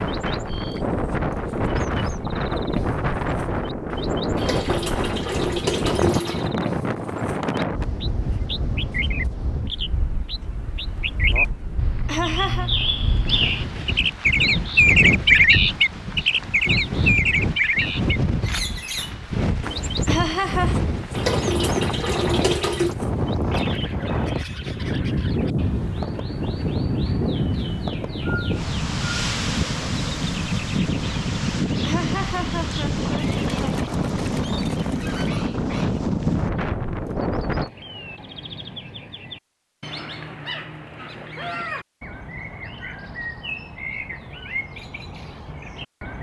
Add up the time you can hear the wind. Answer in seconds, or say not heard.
38 s.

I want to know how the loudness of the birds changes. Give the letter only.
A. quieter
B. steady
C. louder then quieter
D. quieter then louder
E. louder
C.